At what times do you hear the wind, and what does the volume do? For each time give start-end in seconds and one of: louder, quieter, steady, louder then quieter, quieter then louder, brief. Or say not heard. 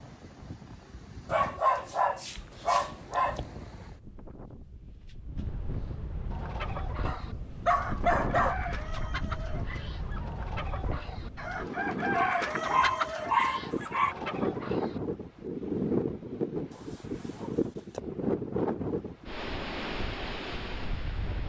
0.0-21.4 louder.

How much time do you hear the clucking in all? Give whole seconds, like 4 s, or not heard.
9 s.